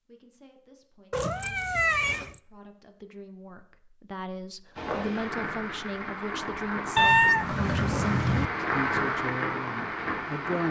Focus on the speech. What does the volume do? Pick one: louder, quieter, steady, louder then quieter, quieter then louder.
louder.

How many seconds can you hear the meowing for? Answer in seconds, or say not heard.
3 s.